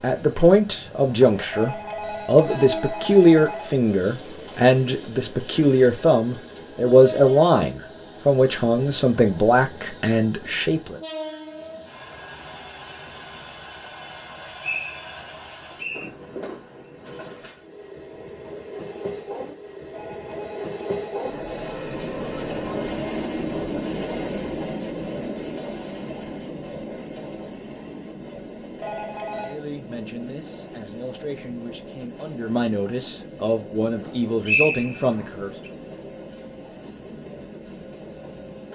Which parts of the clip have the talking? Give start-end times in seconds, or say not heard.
0.0-11.0, 29.4-35.5.